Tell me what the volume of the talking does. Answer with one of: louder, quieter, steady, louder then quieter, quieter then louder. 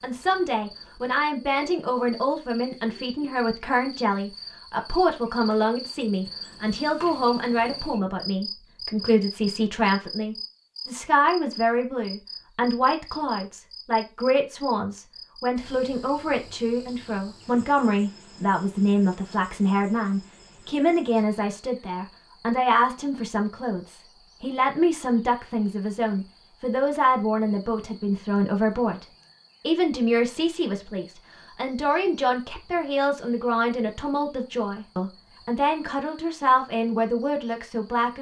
steady.